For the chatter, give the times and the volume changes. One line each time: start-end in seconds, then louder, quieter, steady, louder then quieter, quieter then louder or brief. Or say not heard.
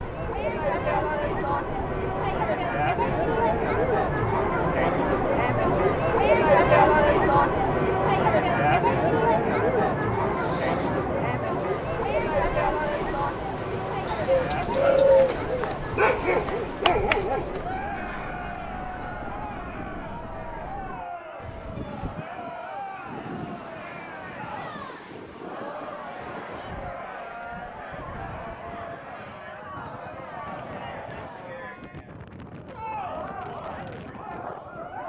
0.0-35.0 quieter.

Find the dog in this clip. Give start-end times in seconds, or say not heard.
14.8-17.6.